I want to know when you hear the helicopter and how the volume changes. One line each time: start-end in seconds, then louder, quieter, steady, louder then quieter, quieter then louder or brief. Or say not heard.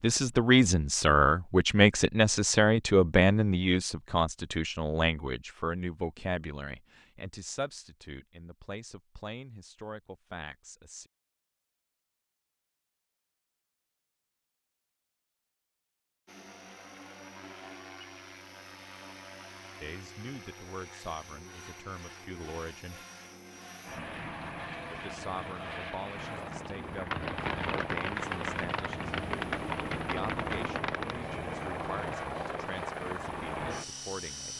16.2-34.5 louder.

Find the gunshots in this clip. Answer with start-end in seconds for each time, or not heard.
27.1-31.2.